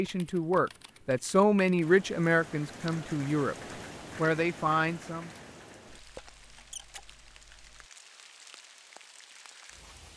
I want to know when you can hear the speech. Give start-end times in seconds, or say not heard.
0.0-3.5, 4.2-5.3.